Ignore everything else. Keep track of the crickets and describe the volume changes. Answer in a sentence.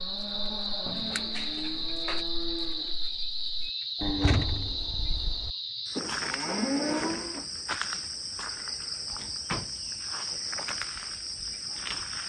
The volume of the crickets stays about the same.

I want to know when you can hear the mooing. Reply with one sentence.
The mooing can be heard from 0.0 to 7.5 s.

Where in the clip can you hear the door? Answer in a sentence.
The door can be heard from 0.8 to 2.2 s, from 4.2 to 4.8 s and from 9.2 to 9.8 s.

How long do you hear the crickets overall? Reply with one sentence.
You can hear the crickets for 12 seconds altogether.